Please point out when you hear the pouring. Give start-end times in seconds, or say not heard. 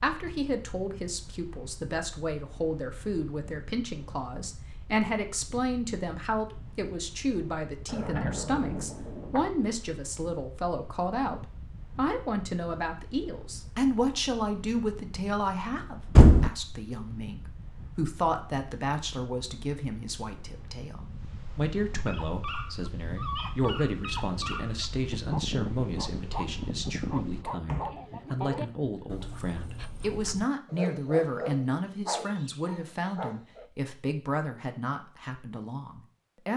not heard.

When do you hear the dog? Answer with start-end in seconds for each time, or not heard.
22.1-33.7.